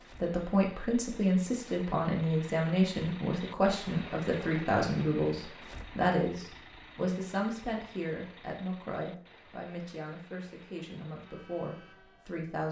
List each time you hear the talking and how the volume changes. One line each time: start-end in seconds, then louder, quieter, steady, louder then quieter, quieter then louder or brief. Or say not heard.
0.2-12.6 quieter.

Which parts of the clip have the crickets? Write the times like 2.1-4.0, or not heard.
not heard.